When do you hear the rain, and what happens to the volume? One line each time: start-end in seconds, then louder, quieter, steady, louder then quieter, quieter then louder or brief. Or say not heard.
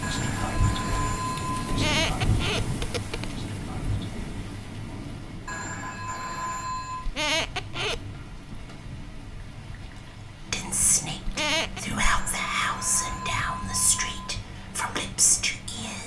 0.0-16.0 quieter.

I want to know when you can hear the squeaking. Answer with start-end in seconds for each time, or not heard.
1.6-3.4, 7.0-8.1, 11.2-11.8.